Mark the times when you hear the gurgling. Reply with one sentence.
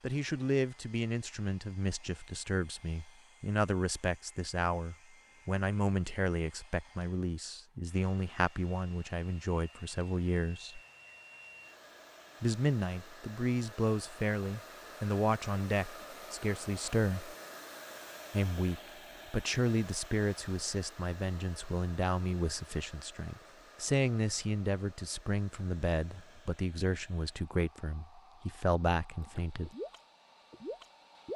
The gurgling can be heard from 29.2 to 31.3 s.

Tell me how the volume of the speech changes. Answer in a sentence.
The volume of the speech stays about the same.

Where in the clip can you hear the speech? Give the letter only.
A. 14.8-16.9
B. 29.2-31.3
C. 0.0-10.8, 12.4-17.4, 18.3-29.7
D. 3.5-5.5
C.